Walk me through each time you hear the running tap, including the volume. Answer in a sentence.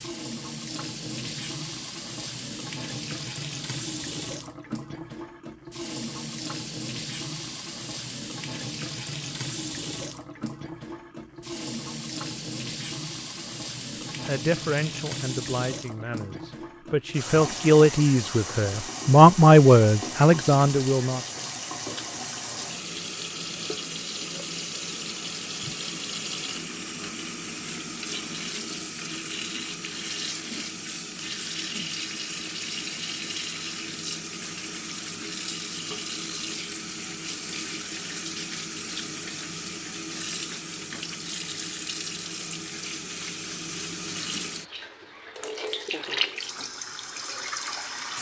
You can hear the running tap from 0.0 to 48.1 s, at a steady volume.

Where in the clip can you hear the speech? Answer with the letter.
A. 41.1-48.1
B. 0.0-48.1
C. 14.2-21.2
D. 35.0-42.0
C.